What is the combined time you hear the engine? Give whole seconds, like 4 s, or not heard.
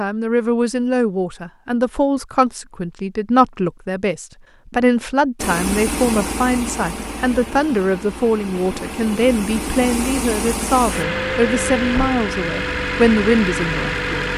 9 s.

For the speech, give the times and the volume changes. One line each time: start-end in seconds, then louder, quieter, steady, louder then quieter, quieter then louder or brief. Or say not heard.
0.0-14.3 steady.